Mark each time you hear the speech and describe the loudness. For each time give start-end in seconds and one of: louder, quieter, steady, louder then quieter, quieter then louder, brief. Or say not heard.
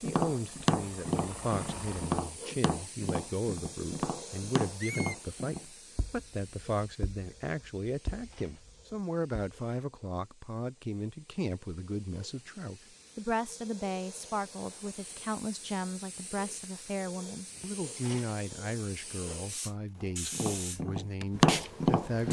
0.0-22.2 steady.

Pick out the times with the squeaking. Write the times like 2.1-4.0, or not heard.
4.8-5.2.